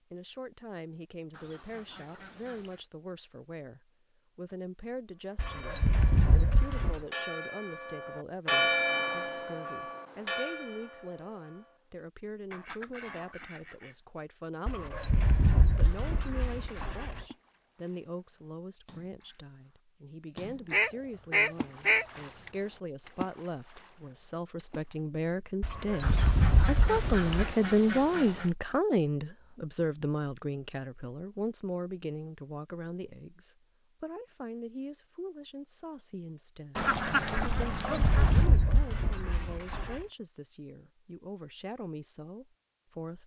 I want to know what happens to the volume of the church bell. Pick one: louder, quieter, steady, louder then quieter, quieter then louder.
louder then quieter.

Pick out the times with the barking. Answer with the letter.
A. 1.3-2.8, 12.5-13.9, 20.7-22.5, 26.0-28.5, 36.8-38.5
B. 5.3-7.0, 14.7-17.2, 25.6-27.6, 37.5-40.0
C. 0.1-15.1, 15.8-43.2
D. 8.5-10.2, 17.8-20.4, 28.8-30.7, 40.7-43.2
B.